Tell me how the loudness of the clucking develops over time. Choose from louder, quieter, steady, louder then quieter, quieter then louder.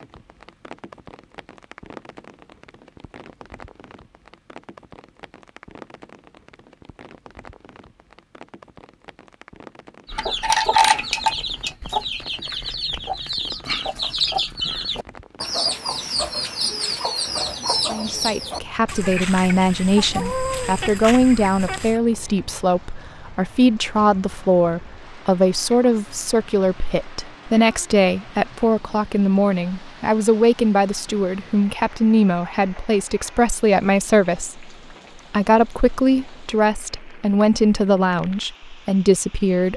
quieter.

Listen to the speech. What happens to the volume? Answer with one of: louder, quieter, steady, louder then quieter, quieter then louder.
steady.